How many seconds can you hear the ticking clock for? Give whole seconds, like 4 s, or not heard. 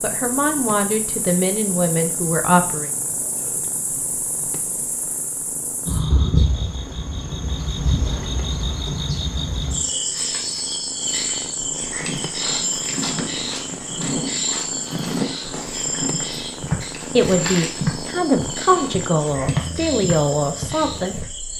not heard.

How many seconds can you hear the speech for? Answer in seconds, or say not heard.
7 s.